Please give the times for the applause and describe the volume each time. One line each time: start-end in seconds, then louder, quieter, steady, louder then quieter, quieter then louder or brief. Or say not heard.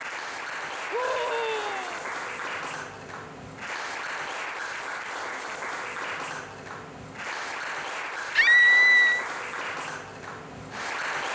0.0-11.2 steady.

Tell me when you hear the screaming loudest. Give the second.
9 s.